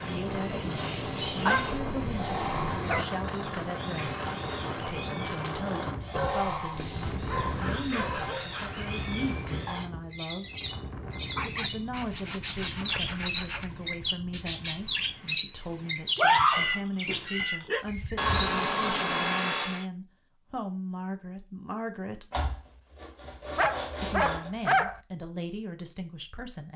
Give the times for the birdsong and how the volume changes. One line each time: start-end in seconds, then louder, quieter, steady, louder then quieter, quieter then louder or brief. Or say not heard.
0.0-18.6 louder.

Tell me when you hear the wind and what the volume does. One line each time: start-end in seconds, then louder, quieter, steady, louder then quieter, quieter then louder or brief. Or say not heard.
0.0-14.9 quieter.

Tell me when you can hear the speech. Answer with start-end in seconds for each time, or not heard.
0.0-10.5, 11.4-22.4, 24.0-26.7.